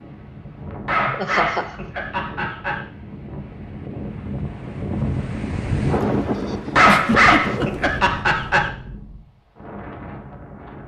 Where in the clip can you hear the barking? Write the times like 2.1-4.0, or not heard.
0.8-2.8, 6.8-8.7.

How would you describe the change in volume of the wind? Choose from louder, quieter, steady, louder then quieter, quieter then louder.
louder then quieter.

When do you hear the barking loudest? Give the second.
7 s.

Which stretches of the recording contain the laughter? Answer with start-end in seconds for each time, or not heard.
1.1-1.9, 6.8-7.9.